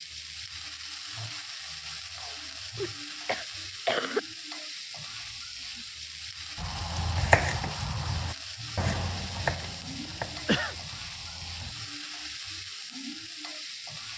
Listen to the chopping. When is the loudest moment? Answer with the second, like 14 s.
7 s.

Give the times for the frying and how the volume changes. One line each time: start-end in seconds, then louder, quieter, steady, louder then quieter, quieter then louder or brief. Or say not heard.
0.0-14.1 steady.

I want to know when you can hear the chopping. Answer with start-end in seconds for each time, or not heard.
6.5-11.8.